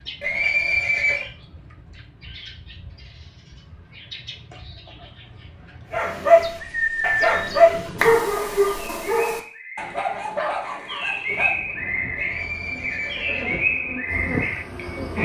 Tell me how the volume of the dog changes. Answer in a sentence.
The loudness of the dog goes down.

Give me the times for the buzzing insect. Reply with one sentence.
The buzzing insect can be heard from 11.2 to 15.2 s.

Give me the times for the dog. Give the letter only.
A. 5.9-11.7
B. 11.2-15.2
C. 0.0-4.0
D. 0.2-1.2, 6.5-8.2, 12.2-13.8
A.